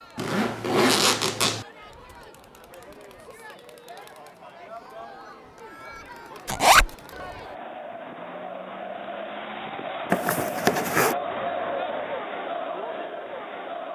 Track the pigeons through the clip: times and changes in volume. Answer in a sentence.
You can't hear the pigeons here.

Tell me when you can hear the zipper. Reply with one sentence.
The zipper can be heard from 0.1 to 1.6 s, from 6.5 to 6.9 s and from 10.1 to 11.2 s.